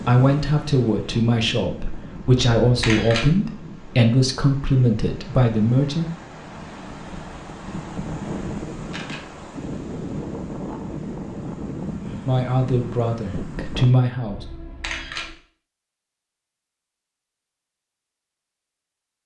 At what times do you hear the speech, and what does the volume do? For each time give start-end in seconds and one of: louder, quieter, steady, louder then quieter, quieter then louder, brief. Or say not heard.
0.1-6.0 steady
12.2-14.4 brief.